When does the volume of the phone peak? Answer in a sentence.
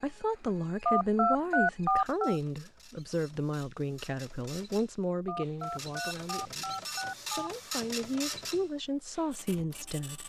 The loudest moment of the phone is at 2 seconds.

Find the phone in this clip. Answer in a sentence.
The phone can be heard from 0.8 to 2.4 s and from 5.2 to 7.5 s.